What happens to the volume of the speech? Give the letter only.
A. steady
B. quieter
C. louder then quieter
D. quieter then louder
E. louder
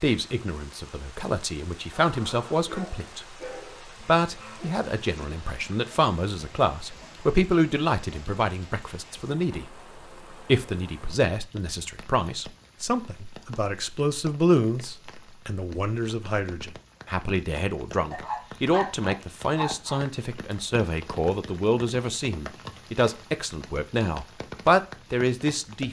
A.